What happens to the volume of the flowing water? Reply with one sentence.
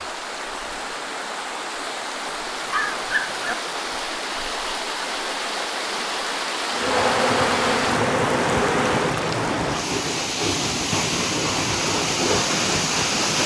The loudness of the flowing water goes up.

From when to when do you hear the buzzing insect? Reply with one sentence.
You can hear the buzzing insect from 6.7 to 9.2 s.